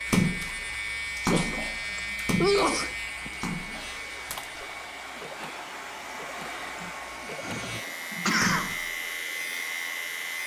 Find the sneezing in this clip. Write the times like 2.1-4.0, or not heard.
1.3-3.3, 6.8-8.8.